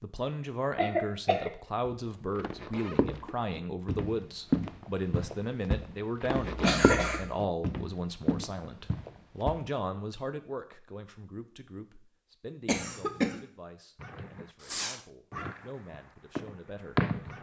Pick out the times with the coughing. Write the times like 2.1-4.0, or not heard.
0.8-1.5, 6.3-7.3, 12.7-13.4.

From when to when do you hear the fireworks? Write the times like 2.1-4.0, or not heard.
13.9-17.3.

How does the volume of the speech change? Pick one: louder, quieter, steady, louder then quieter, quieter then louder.
quieter.